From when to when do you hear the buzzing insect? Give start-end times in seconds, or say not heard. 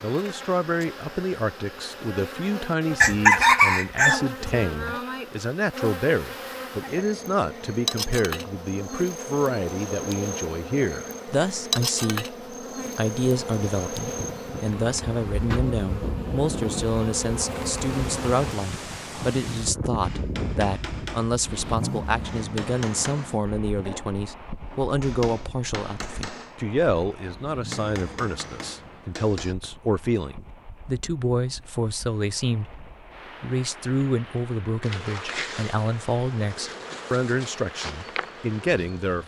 0.0-18.6, 34.8-39.2.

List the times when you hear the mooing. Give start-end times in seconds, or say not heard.
not heard.